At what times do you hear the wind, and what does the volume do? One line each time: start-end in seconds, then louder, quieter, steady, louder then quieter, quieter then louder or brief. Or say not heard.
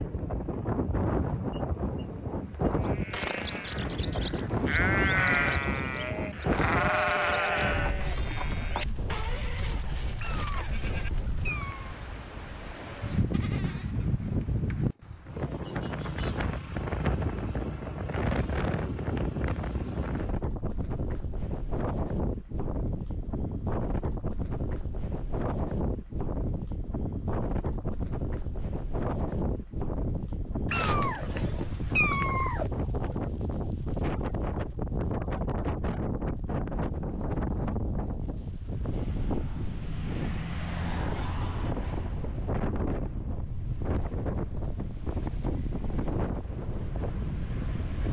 0.0-48.0 steady.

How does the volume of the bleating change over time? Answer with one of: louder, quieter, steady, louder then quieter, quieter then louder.
quieter.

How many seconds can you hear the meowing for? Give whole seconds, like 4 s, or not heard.
4 s.